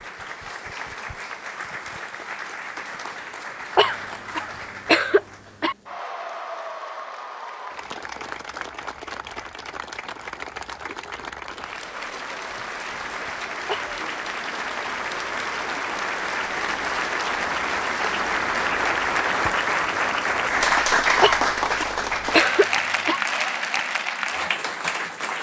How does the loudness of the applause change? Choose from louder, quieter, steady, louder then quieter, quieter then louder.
louder.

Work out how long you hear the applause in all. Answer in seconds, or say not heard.
25 s.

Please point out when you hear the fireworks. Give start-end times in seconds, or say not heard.
not heard.